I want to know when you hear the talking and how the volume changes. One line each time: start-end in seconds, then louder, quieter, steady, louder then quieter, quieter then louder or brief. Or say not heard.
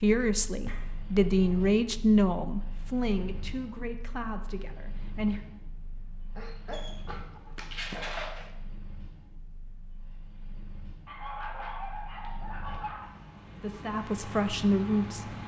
0.0-5.4 louder then quieter
13.6-15.2 brief.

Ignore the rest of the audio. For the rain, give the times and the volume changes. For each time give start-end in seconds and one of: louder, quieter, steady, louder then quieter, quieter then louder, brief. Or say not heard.
not heard.